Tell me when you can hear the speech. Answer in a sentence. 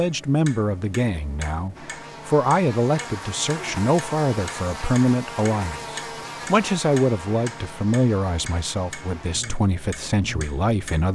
The speech can be heard from 0.0 to 11.0 s.